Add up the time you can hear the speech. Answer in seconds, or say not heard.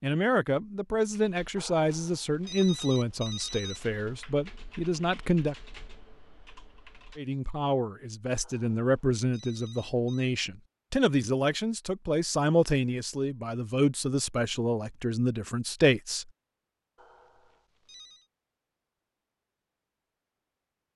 15 s.